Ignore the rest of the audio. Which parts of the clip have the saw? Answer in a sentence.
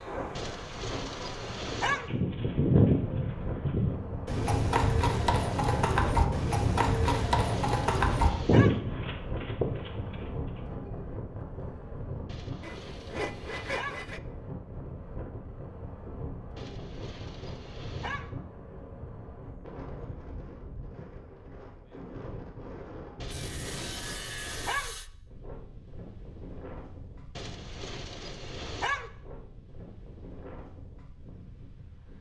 The saw can be heard from 12.6 to 14.2 s and from 23.2 to 25.1 s.